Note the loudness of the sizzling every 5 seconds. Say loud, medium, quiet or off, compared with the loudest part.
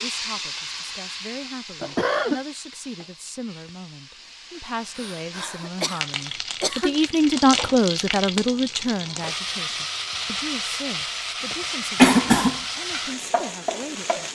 medium, loud, loud.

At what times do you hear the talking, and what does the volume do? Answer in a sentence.
The talking can be heard from 0.0 to 14.3 s, getting louder then quieter.